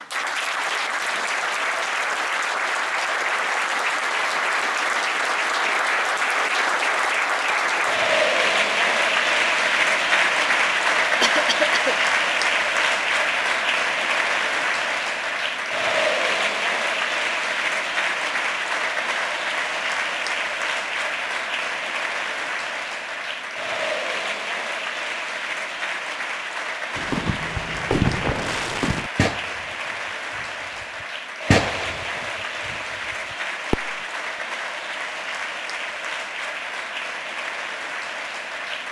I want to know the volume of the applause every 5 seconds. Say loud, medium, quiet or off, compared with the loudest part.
loud, loud, loud, loud, medium, medium, medium, medium.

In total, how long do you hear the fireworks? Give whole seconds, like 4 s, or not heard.
7 s.